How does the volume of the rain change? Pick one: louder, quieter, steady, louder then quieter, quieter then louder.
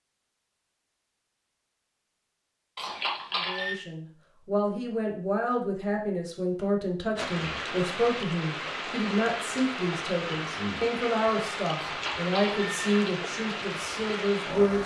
steady.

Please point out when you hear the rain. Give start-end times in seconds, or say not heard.
7.2-14.8.